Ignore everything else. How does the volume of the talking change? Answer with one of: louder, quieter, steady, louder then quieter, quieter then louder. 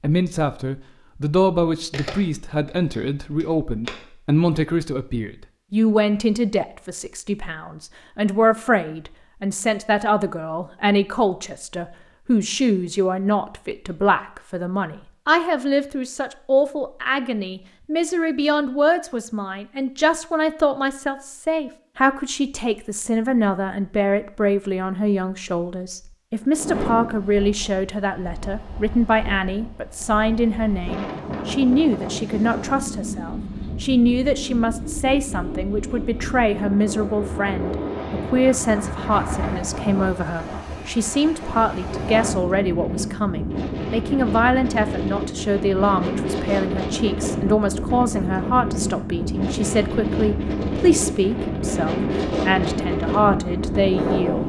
steady.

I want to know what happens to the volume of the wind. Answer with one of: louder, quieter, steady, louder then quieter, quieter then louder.
louder.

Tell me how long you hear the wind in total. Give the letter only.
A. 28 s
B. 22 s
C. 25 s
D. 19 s
A.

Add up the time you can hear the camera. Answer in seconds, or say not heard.
2 s.